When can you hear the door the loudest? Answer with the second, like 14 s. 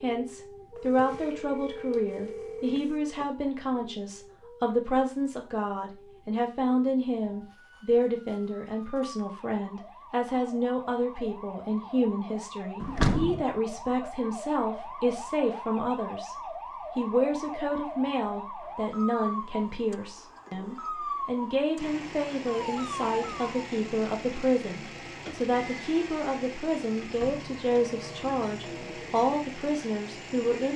13 s.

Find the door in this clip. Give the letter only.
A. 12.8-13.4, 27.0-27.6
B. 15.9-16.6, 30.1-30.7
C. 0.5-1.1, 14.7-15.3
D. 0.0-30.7
A.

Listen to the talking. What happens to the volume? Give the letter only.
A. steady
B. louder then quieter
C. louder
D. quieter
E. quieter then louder
A.